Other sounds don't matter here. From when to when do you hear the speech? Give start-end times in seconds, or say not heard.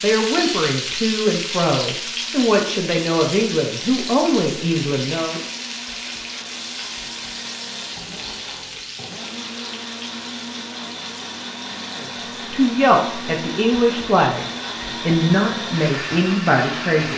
0.0-5.4, 11.9-17.1.